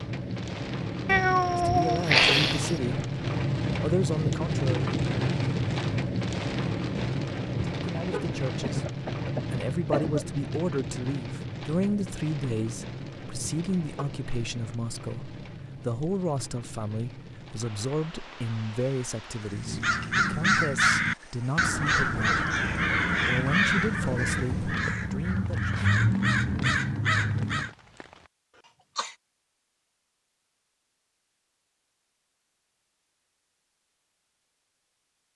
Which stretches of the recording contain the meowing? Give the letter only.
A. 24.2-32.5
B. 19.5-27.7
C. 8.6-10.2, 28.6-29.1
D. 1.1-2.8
D.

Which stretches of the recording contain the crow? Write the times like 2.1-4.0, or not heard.
19.5-27.7.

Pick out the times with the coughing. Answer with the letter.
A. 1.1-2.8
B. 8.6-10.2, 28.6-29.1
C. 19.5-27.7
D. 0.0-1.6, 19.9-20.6
B.